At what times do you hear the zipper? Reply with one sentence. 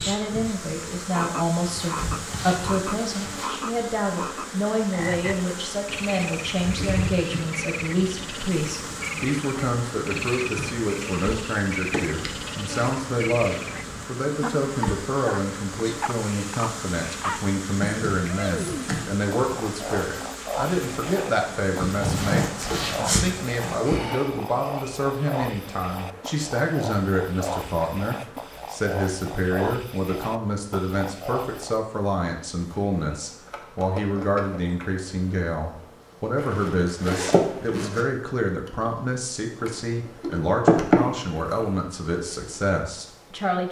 The zipper can be heard from 1.6 to 3.5 s, from 22.0 to 23.1 s and from 36.4 to 38.0 s.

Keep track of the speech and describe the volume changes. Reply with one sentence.
The loudness of the speech stays about the same.